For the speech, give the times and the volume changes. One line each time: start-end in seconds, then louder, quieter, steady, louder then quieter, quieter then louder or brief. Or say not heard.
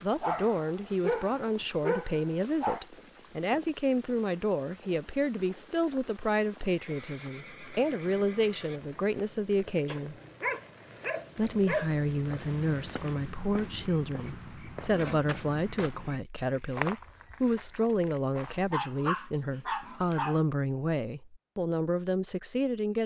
0.0-10.2 steady
11.3-23.0 steady.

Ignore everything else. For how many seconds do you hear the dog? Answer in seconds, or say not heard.
7 s.